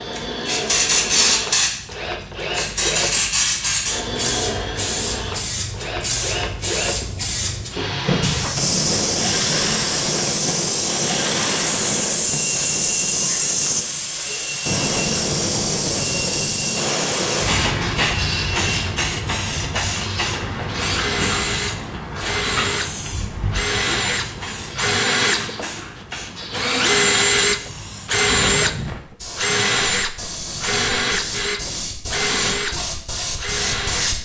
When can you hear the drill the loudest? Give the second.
27 s.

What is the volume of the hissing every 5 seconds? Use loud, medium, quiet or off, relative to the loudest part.
loud, loud, loud, loud, medium, medium, medium.